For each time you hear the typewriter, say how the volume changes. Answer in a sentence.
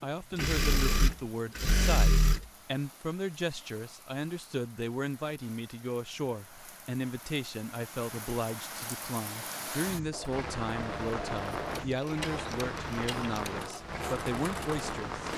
The typewriter can't be heard in this clip.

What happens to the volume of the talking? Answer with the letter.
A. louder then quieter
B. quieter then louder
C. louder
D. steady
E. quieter
D.